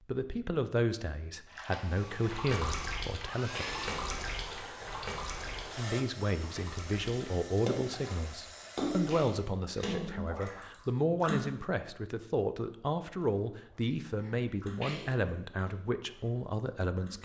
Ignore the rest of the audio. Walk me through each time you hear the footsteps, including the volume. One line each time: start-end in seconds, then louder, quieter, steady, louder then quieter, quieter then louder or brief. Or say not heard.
not heard.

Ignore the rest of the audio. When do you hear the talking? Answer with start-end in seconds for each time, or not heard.
0.1-3.6, 5.8-17.2.